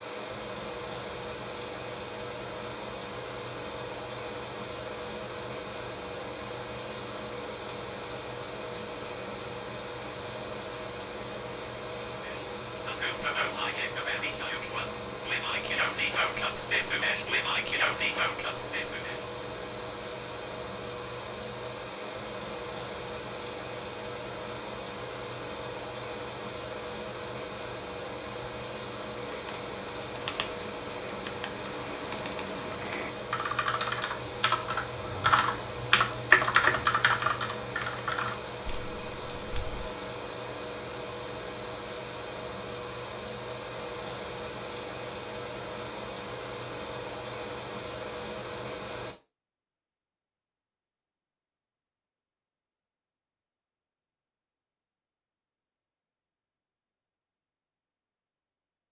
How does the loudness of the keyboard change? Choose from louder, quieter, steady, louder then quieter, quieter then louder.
louder then quieter.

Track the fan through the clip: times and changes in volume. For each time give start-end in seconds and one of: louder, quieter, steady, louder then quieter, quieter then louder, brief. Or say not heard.
0.0-49.1 steady.